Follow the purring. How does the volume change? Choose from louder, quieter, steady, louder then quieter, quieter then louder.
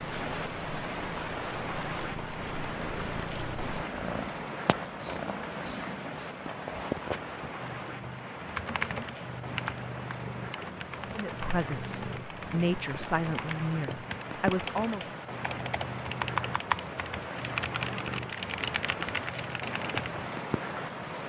steady.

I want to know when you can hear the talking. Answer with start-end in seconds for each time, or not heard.
11.0-15.1.